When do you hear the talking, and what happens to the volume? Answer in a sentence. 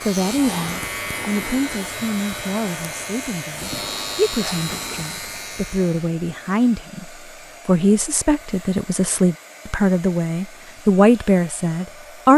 The talking can be heard from 0.0 to 12.3 s, getting louder.